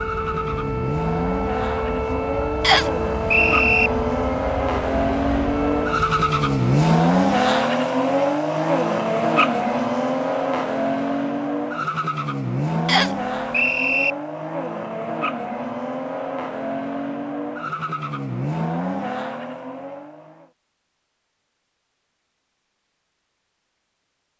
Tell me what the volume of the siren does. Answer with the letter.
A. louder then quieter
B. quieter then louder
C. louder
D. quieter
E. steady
E.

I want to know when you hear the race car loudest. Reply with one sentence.
The loudest moment of the race car is at 7 seconds.